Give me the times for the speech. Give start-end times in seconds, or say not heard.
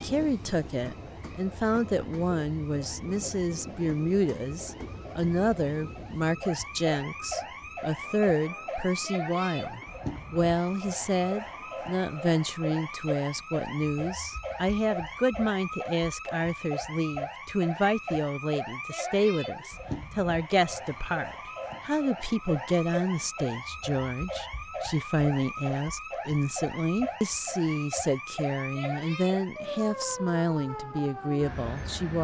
0.0-32.2.